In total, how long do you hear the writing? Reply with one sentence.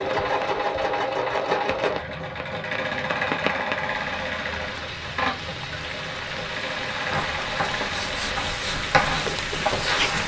The writing can be heard for 3 seconds in total.